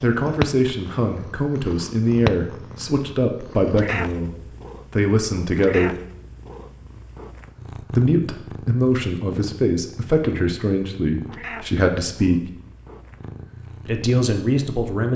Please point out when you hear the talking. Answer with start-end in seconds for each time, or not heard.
0.0-4.3, 4.9-6.0, 7.9-12.5, 13.8-15.1.